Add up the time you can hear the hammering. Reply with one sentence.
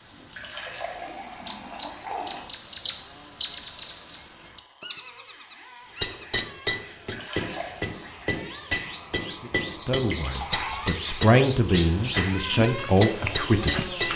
You can hear the hammering for 8 seconds altogether.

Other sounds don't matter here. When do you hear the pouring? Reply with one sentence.
The pouring can be heard from 0.3 to 2.5 s, from 7.0 to 7.8 s and from 10.0 to 10.8 s.